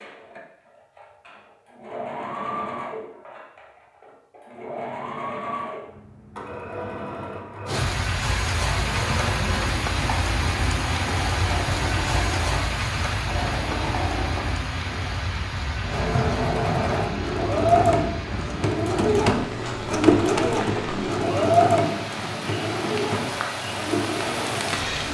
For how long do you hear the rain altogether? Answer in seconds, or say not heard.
17 s.